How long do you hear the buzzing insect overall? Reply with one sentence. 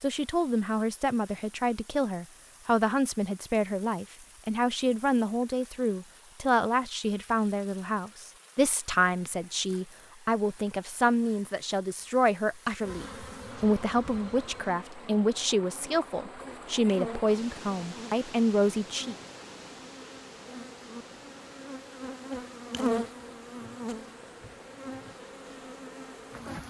You can hear the buzzing insect for 14 seconds altogether.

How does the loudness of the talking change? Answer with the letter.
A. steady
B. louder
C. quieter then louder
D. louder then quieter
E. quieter
A.